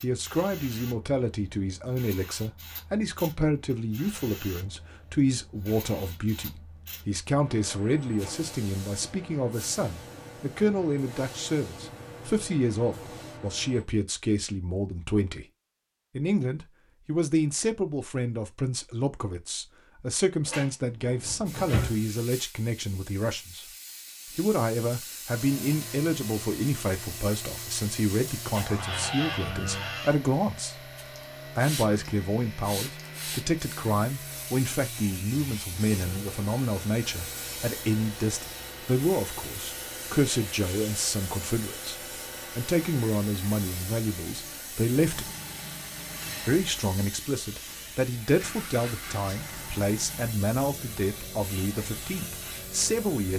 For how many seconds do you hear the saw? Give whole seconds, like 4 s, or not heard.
not heard.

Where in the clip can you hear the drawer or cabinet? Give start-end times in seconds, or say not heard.
20.4-22.0, 28.6-30.1.